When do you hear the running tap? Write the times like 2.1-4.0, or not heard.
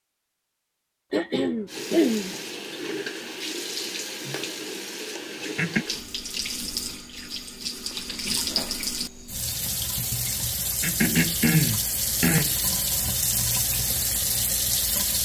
1.6-15.1.